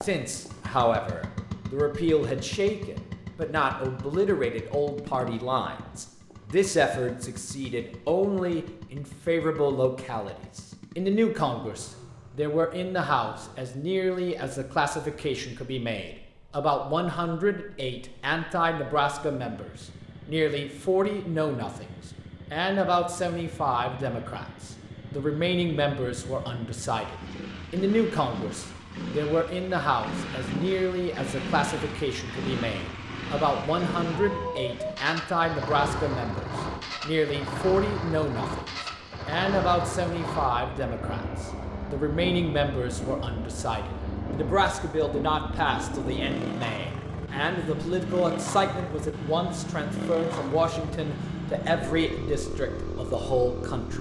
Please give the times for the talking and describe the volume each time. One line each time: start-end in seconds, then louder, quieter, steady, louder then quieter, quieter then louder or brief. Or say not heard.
0.0-53.9 steady.